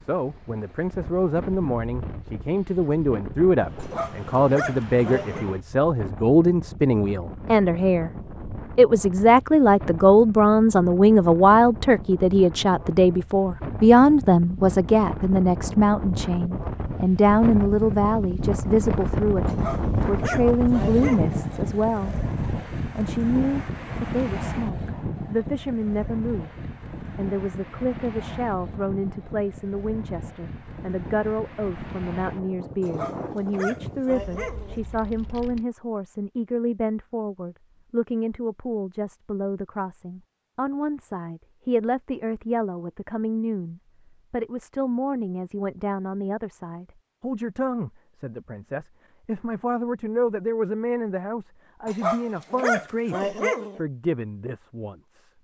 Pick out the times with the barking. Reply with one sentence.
You can hear the barking from 3.8 to 5.5 s, from 19.4 to 21.4 s, from 32.8 to 34.8 s and from 51.9 to 53.8 s.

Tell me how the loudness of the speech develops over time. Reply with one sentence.
The loudness of the speech goes down.